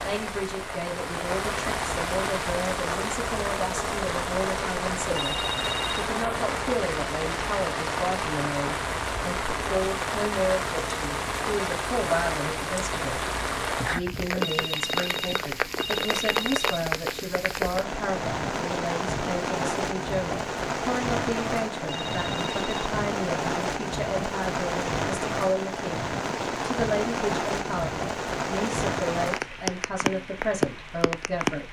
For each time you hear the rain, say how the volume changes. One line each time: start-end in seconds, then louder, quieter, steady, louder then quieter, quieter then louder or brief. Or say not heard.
0.0-31.6 steady.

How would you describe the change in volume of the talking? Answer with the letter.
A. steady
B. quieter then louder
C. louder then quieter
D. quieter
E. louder
A.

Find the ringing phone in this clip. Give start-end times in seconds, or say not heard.
5.0-6.0, 14.3-16.9, 21.9-22.8.